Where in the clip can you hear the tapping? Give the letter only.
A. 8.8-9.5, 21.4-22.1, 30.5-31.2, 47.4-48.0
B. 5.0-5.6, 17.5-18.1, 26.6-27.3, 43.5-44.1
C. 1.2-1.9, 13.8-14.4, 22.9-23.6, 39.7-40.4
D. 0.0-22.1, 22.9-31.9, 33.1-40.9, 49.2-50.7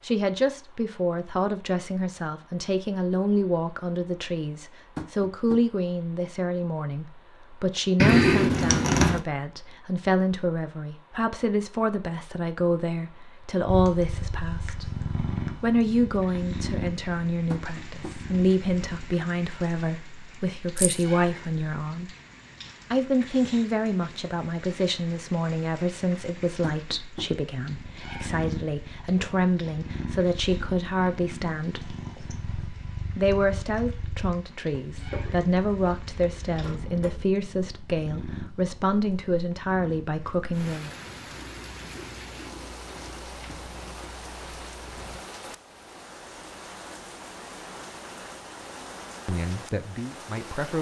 B.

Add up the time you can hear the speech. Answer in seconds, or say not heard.
40 s.